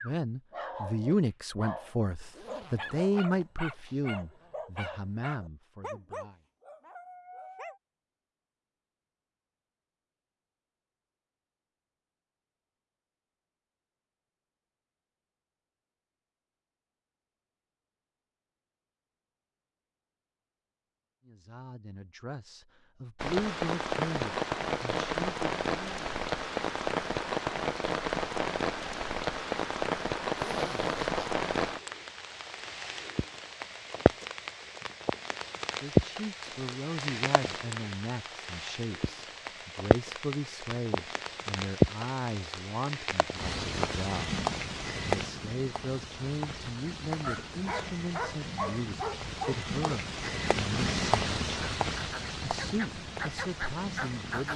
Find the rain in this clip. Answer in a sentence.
You can hear the rain from 23.2 to 54.5 s.